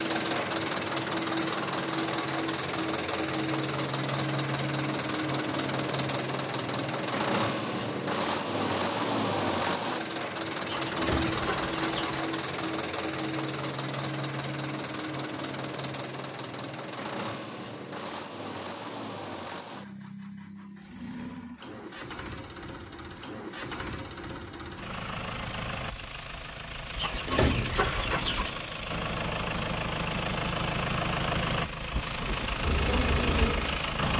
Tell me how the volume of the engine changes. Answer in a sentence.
The volume of the engine goes down, then up.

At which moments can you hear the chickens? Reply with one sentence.
You can hear the chickens from 10.8 to 12.1 s and from 26.9 to 28.5 s.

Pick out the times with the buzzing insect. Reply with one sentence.
The buzzing insect can be heard from 32.6 to 34.1 s.